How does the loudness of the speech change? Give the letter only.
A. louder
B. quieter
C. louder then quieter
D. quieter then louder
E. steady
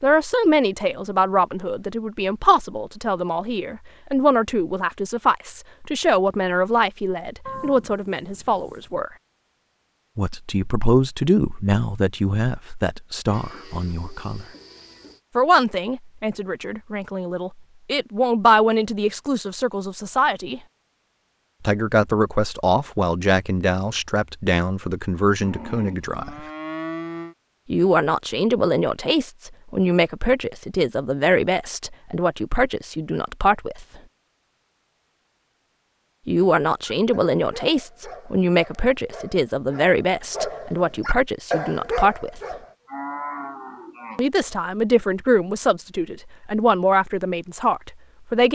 E.